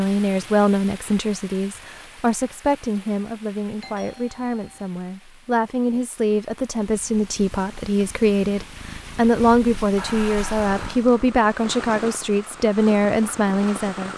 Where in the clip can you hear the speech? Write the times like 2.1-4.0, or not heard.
0.0-14.1.